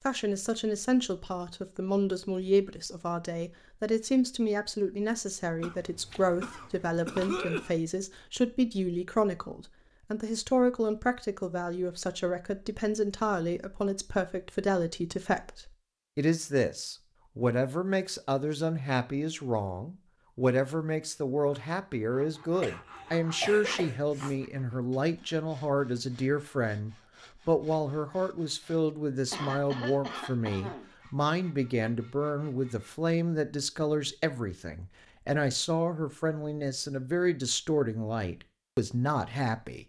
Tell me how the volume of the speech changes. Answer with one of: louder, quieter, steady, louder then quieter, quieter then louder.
steady.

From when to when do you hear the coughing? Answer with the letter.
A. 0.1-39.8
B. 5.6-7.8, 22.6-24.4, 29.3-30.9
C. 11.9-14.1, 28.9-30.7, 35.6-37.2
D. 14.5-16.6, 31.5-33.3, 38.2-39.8
B.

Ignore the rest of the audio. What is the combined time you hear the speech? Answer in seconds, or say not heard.
40 s.